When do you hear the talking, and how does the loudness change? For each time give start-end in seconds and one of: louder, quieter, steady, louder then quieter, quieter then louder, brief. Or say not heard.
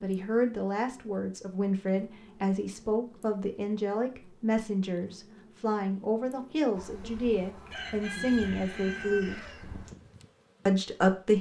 0.0-9.4 steady
10.7-11.3 brief.